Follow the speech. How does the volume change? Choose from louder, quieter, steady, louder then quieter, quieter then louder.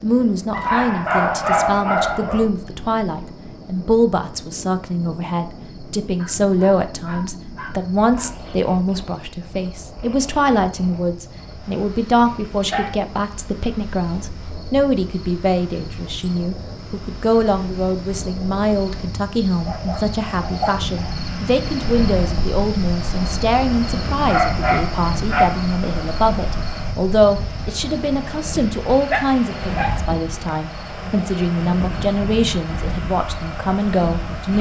steady.